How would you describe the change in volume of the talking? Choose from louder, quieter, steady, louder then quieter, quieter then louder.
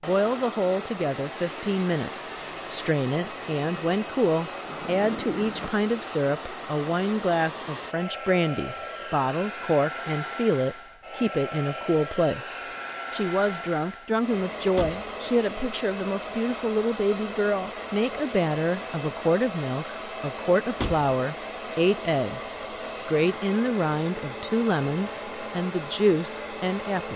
steady.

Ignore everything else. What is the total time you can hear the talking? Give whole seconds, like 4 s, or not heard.
27 s.